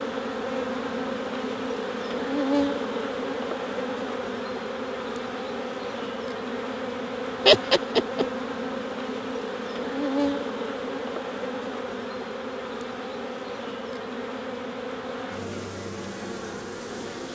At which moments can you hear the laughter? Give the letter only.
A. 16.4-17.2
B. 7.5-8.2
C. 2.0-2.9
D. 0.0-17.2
B.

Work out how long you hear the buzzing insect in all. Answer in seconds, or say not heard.
17 s.